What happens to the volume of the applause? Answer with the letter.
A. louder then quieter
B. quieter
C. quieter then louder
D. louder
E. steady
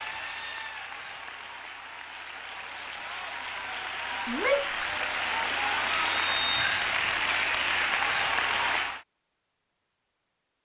D.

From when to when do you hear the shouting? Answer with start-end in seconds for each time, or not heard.
4.2-4.9.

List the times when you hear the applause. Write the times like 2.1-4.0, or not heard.
0.0-9.1.